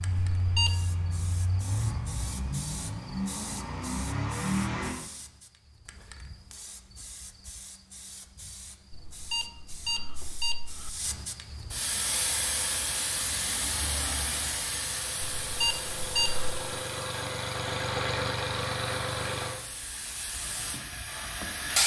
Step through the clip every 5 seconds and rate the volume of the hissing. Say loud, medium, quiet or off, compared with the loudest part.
quiet, quiet, loud, medium, loud.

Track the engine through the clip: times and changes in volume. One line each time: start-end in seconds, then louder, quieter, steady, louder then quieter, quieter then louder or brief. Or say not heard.
0.0-4.9 louder
11.9-21.8 louder then quieter.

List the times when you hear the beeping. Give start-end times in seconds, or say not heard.
0.3-0.8, 8.9-10.9, 15.4-16.6.